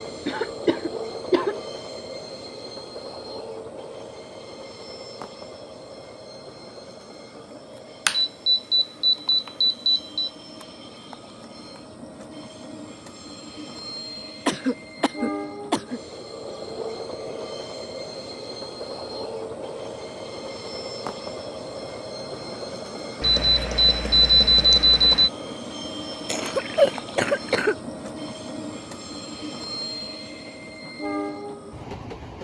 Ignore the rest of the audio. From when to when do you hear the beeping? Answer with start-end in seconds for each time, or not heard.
8.1-10.3, 23.2-25.3.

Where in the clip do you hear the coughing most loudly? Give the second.
27 s.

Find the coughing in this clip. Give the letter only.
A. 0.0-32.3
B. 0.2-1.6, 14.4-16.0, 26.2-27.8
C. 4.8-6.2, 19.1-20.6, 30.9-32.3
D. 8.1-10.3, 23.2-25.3
B.